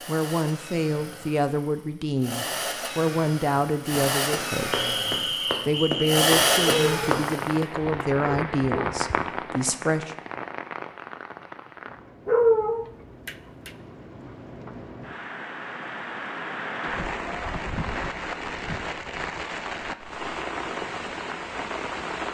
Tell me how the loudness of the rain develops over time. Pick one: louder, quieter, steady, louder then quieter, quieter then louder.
quieter then louder.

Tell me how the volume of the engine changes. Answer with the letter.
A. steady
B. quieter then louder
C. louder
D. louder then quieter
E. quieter
C.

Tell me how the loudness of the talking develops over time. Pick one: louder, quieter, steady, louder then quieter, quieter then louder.
steady.